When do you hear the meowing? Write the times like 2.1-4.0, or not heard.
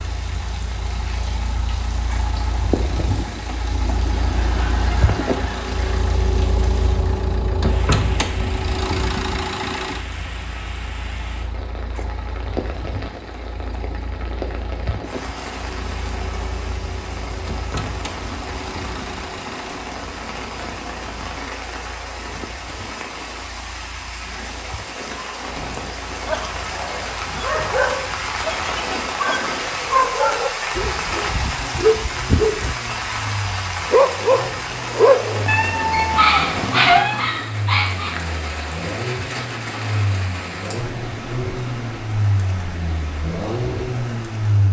35.5-37.2.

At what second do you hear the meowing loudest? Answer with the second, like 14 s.
37 s.